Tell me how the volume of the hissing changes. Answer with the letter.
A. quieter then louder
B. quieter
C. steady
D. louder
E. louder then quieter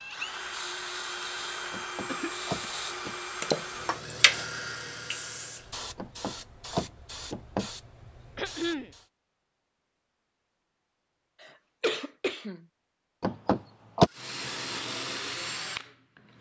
E.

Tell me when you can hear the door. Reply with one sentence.
You can hear the door from 1.7 to 3.1 s, from 6.0 to 7.7 s and from 13.2 to 14.1 s.